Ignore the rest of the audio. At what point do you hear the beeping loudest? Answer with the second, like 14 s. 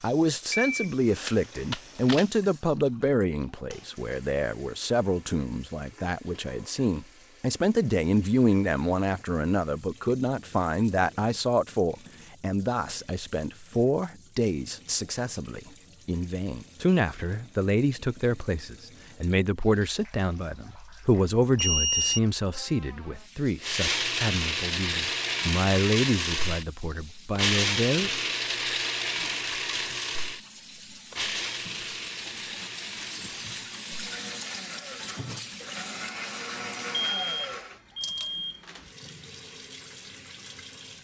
22 s.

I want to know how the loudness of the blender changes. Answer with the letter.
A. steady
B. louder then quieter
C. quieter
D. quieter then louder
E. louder
C.